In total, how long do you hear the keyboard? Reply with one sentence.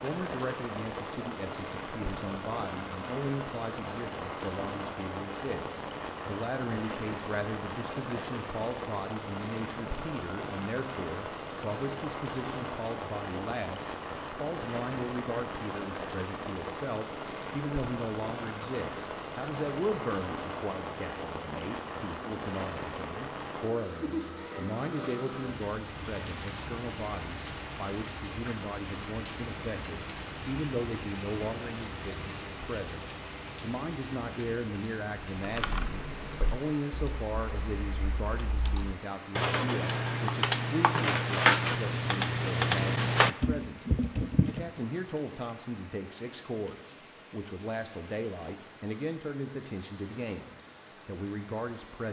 The keyboard can be heard for 9 seconds in total.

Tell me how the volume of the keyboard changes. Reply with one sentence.
The loudness of the keyboard goes up.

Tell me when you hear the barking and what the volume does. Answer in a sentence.
The barking can't be heard in this clip.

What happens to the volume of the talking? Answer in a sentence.
The volume of the talking stays about the same.